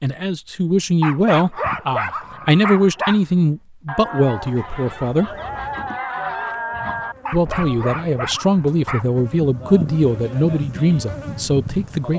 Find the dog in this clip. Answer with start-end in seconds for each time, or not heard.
1.0-3.2, 7.2-9.1.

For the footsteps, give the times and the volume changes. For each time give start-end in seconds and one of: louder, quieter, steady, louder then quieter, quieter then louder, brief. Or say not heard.
not heard.